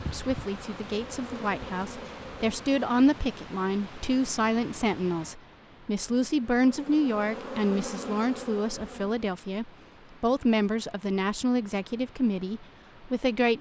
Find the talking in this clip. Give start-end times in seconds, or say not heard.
0.1-13.5.